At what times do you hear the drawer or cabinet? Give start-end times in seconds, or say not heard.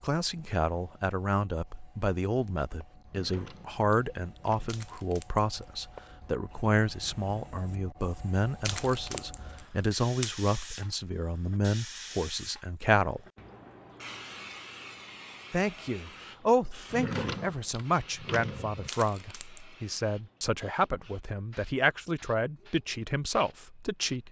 3.0-4.8, 16.9-18.9.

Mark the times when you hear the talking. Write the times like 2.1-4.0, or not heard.
0.0-13.2, 15.5-24.2.